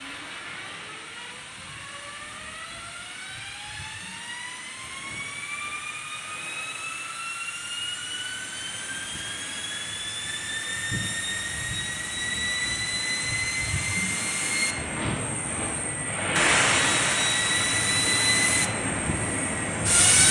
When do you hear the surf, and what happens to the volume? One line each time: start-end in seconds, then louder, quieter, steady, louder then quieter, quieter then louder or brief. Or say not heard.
0.0-20.2 louder.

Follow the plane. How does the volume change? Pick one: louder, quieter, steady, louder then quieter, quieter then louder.
louder.